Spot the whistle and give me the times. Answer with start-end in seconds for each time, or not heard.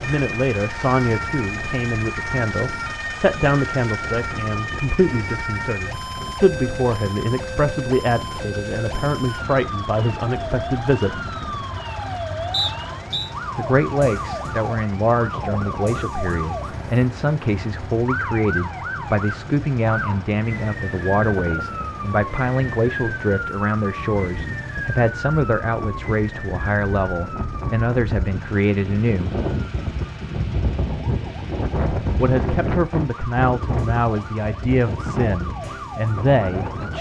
12.5-13.3.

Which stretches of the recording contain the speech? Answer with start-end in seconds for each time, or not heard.
0.0-11.2, 13.6-29.4, 32.1-36.9.